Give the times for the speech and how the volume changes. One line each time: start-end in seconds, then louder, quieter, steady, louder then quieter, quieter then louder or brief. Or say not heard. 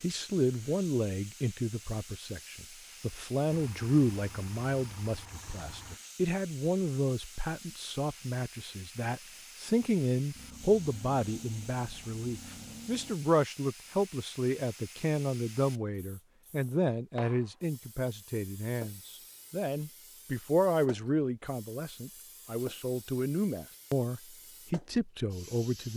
0.0-25.9 steady.